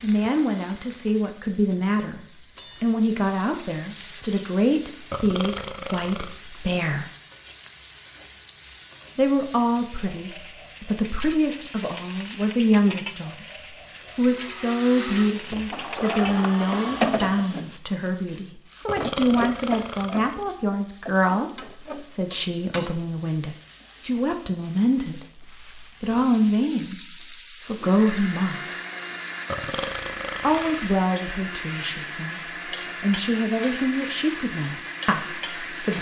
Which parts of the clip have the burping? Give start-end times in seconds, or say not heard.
5.1-6.4, 18.9-20.4, 29.4-30.9.